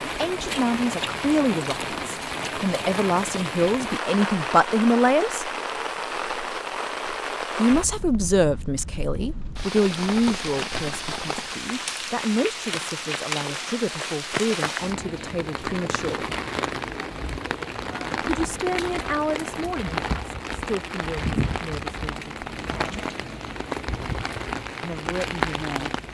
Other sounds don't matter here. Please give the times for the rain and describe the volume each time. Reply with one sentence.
You can hear the rain from 0.0 to 26.0 s, at a steady volume.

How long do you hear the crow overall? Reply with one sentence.
You can't hear the crow here.